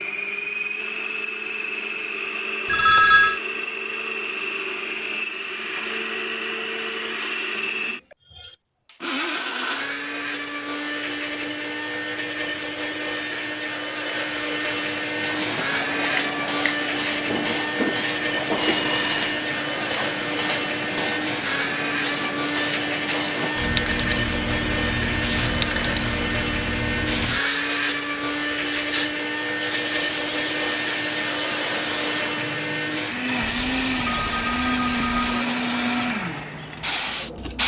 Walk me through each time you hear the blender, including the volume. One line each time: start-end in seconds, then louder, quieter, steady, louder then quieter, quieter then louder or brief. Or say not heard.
0.0-37.6 steady.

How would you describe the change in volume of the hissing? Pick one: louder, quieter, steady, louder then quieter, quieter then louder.
steady.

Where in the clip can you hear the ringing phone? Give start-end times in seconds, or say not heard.
2.6-3.4, 18.6-19.4, 33.6-35.5.